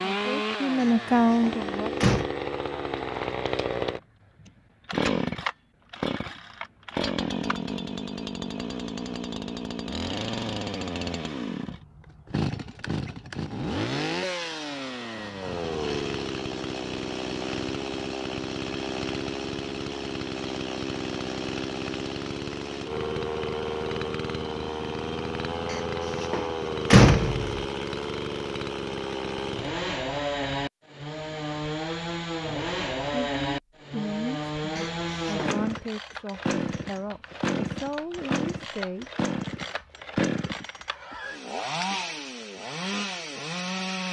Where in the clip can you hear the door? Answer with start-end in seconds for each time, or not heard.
0.8-2.3, 25.7-27.6, 34.8-35.5.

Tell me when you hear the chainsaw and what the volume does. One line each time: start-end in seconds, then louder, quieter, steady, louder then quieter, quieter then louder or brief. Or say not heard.
0.0-44.0 steady.